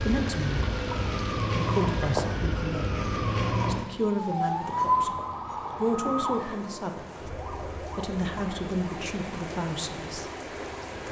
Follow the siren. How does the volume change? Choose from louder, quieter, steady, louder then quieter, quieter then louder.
quieter.